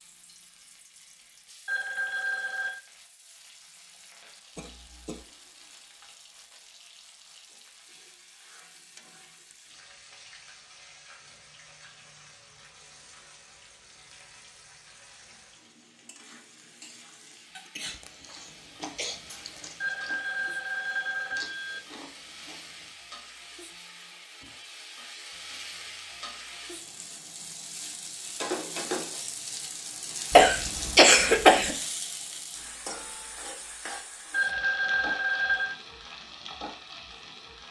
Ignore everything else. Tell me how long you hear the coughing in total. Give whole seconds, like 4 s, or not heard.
4 s.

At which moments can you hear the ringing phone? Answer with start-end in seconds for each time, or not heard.
1.6-2.8, 19.8-21.8, 34.3-35.8.